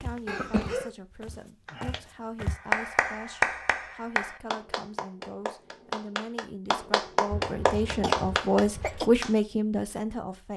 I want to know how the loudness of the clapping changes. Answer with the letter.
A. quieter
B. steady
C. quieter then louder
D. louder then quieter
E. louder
C.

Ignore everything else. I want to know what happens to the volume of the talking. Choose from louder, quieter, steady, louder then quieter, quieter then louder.
louder.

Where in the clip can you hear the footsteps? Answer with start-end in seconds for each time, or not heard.
0.0-2.6.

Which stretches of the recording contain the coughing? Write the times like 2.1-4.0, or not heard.
0.2-0.9, 7.3-9.1.